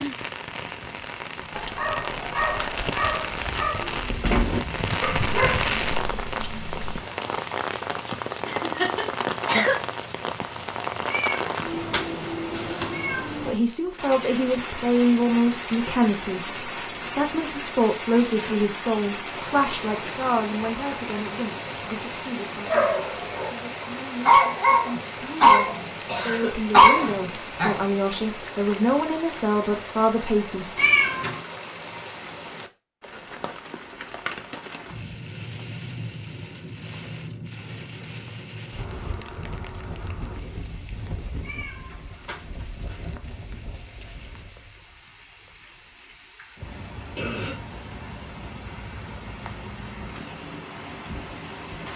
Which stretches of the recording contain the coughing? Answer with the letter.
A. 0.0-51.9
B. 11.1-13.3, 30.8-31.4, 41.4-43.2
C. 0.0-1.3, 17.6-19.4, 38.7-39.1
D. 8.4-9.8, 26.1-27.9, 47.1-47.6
D.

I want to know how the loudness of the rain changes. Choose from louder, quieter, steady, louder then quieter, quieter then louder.
quieter.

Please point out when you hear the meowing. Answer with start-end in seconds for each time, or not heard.
11.1-13.3, 30.8-31.4, 41.4-43.2.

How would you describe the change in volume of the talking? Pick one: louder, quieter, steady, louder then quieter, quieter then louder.
quieter then louder.